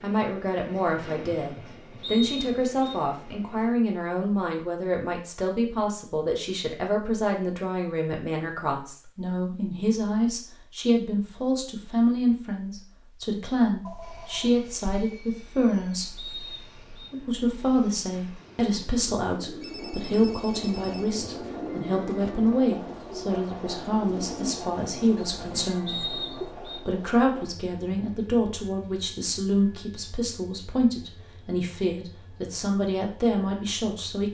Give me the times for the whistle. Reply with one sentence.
The whistle can be heard from 2.0 to 3.0 s, from 16.1 to 17.1 s and from 25.9 to 26.8 s.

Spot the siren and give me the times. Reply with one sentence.
You can't hear the siren here.